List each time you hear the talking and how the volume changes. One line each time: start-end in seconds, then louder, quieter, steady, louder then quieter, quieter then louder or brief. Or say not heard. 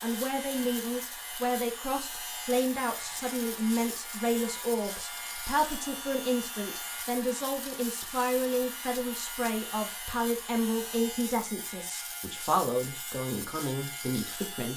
0.0-14.7 steady.